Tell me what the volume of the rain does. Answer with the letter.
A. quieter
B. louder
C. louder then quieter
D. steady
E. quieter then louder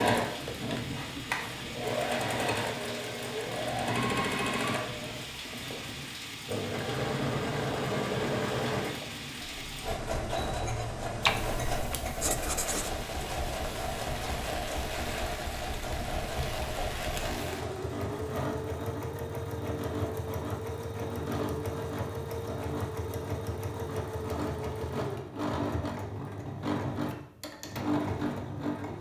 D.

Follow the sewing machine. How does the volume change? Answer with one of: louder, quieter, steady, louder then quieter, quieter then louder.
steady.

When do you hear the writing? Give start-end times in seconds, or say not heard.
11.2-12.9.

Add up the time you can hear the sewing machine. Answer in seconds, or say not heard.
29 s.